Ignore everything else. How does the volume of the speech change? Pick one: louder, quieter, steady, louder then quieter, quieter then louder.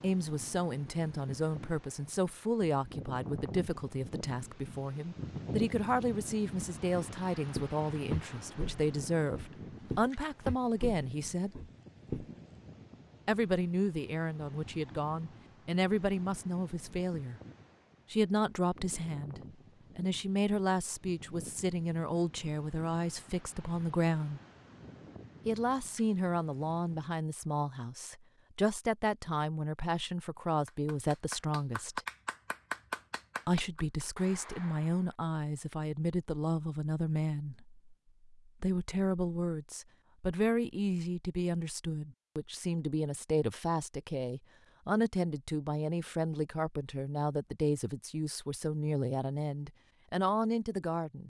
steady.